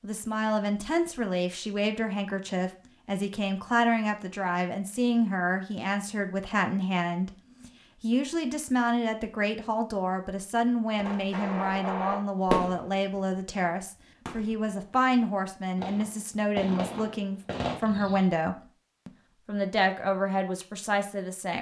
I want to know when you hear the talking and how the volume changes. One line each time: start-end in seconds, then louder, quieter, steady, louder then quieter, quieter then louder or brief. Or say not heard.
0.0-21.5 steady.